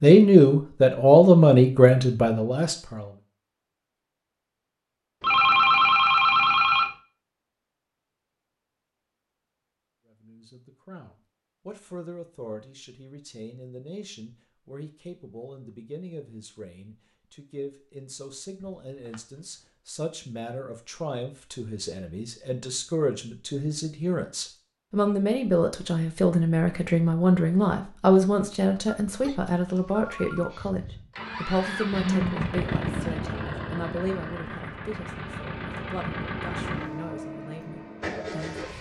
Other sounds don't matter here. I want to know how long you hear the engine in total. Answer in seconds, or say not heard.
8 s.